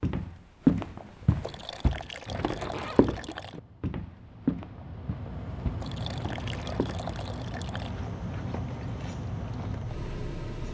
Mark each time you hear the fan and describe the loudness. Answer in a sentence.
The fan can be heard from 2.2 to 10.6 s, getting louder.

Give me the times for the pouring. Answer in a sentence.
You can hear the pouring from 1.4 to 3.6 s and from 5.8 to 8.0 s.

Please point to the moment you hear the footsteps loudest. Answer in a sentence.
The volume of the footsteps peaks at 1 second.